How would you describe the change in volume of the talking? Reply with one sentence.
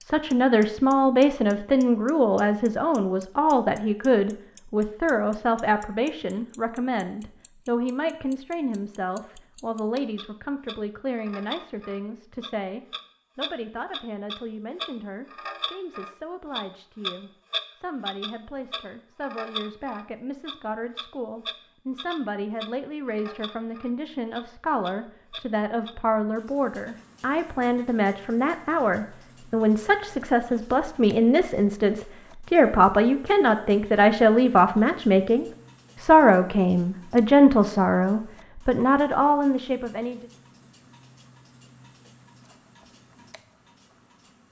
The volume of the talking goes down, then up.